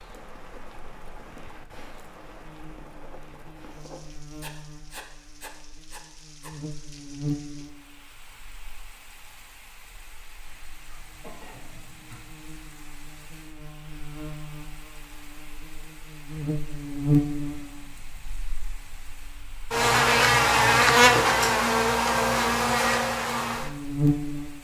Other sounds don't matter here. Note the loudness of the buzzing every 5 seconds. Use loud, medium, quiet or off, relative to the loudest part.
quiet, quiet, quiet, medium, loud.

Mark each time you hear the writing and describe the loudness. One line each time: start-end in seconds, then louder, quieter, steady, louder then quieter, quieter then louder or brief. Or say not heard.
0.0-6.5 louder.